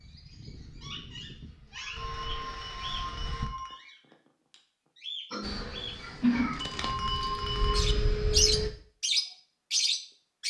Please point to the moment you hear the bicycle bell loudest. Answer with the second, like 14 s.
7 s.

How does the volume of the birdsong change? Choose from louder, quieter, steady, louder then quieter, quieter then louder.
louder.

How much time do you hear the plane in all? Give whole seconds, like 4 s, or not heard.
7 s.